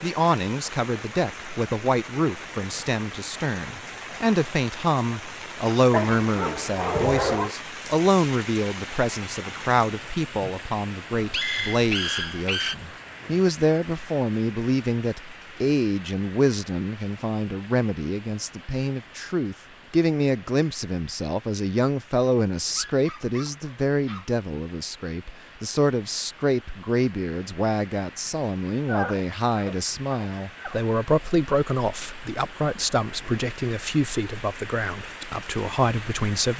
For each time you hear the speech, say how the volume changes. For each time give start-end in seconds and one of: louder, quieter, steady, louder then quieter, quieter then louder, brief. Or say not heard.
0.0-36.5 steady.